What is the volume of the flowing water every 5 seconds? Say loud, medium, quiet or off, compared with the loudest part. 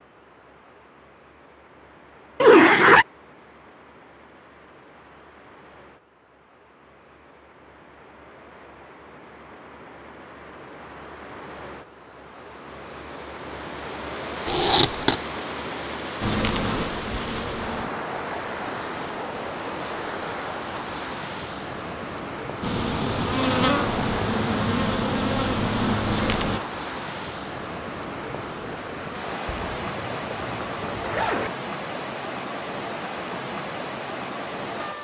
quiet, quiet, medium, loud, loud, loud, loud.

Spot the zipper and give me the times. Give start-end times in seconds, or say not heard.
2.4-3.0, 14.4-15.2, 29.4-31.5.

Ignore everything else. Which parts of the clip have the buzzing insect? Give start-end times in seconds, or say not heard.
16.2-17.9, 22.6-26.6.